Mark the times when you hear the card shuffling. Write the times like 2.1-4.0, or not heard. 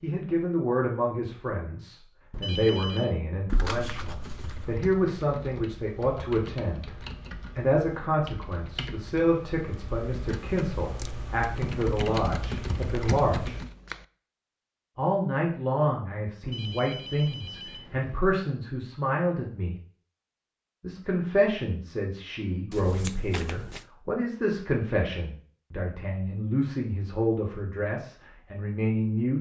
3.5-4.8, 12.2-14.1, 22.7-23.9.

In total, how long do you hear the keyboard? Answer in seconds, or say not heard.
10 s.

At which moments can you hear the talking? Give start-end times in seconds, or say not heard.
0.0-7.0, 7.5-13.6, 14.9-19.8, 20.8-29.3.